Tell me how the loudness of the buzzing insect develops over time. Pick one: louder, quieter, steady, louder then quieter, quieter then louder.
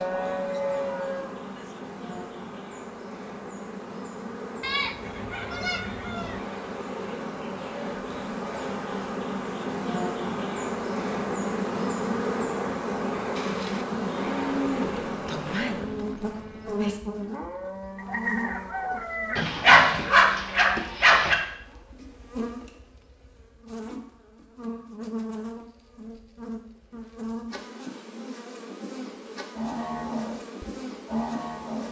louder then quieter.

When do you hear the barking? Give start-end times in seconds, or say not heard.
19.4-21.4.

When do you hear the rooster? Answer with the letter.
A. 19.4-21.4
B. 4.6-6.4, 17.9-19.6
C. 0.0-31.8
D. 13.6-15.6
B.